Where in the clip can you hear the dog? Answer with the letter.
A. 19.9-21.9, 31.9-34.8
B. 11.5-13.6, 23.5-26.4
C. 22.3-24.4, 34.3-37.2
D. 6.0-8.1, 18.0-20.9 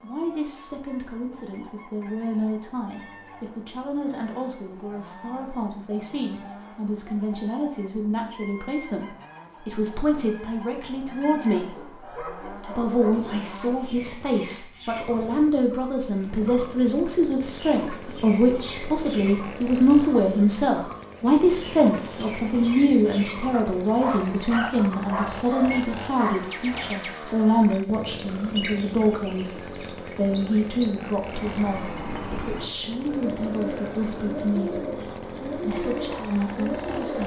B.